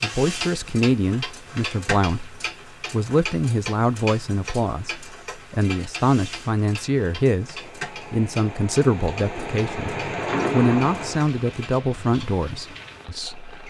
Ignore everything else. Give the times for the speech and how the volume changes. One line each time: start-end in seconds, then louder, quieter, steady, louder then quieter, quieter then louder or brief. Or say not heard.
0.0-13.6 steady.